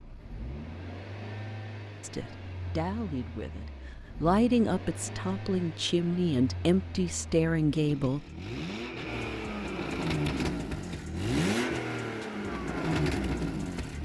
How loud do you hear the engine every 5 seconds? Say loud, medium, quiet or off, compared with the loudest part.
quiet, medium, loud.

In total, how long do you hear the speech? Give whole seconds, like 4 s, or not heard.
6 s.